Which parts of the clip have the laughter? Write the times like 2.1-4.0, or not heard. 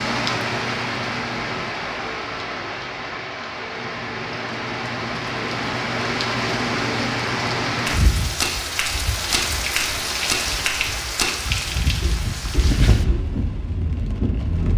not heard.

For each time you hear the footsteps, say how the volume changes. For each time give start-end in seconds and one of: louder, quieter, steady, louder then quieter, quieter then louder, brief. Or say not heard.
7.8-13.3 quieter.